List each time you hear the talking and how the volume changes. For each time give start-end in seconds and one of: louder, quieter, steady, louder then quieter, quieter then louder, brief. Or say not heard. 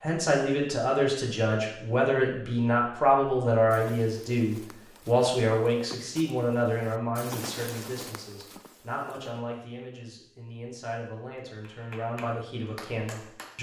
0.0-13.5 quieter.